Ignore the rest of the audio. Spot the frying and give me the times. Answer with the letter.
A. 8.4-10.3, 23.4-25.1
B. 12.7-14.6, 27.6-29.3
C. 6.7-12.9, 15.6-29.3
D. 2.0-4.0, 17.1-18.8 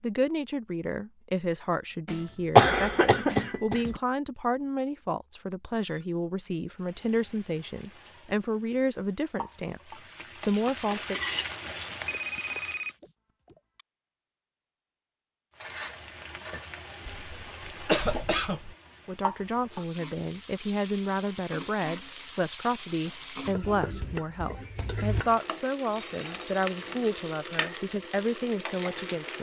C.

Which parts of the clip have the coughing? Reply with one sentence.
You can hear the coughing from 2.0 to 4.0 s and from 17.1 to 18.8 s.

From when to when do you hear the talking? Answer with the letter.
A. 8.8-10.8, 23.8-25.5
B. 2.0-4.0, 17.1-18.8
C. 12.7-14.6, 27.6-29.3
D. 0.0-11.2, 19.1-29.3
D.